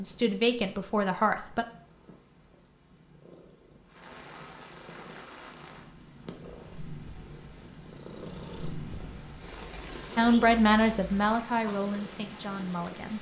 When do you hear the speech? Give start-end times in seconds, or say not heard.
0.0-1.6, 10.2-13.1.